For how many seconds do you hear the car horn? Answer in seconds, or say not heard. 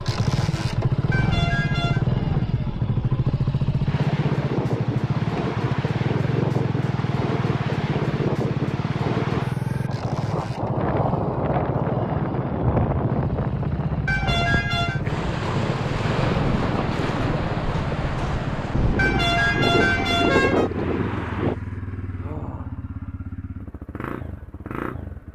4 s.